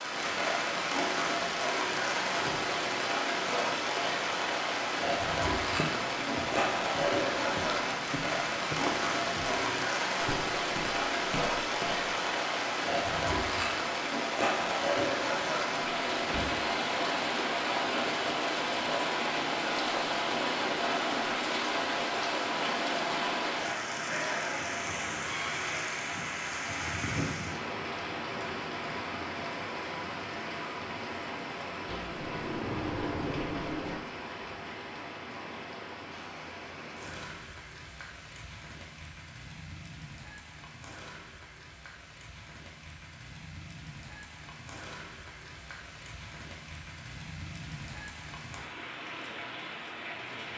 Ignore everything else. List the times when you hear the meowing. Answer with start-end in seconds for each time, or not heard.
not heard.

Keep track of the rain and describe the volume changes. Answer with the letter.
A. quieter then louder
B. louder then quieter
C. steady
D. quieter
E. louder
D.